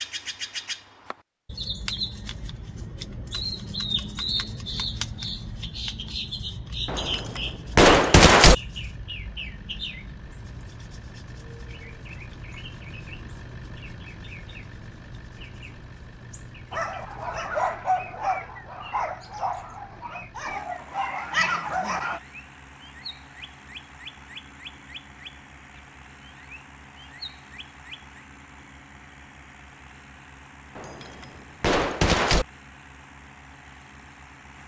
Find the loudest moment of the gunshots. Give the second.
8 s.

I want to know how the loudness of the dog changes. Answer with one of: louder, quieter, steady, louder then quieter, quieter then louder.
quieter then louder.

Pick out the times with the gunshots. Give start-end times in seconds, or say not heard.
6.8-8.6, 30.8-32.5.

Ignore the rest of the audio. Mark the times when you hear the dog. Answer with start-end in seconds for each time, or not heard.
16.7-22.2.